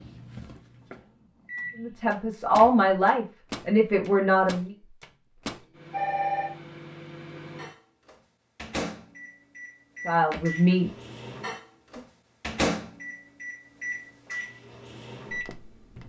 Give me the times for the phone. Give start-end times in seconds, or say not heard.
5.9-6.5.